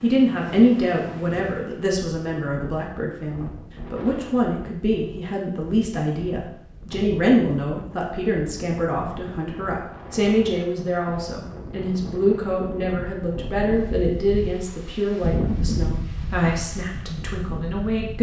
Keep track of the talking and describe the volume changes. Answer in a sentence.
The volume of the talking stays about the same.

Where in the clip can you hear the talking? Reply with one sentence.
You can hear the talking from 0.0 to 18.1 s.